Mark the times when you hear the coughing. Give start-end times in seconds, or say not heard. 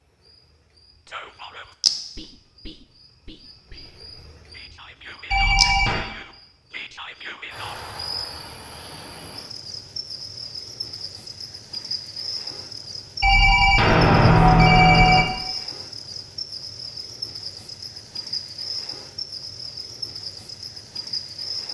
not heard.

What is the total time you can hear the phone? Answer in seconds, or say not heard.
3 s.